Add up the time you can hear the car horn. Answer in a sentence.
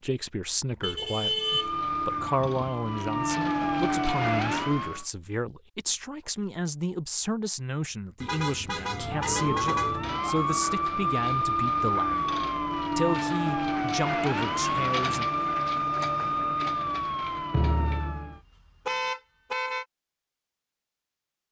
You can hear the car horn for 5 seconds altogether.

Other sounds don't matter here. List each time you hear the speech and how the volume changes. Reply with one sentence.
You can hear the speech from 0.0 to 15.2 s, at a steady volume.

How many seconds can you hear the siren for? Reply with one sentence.
The siren can be heard for 13 seconds in total.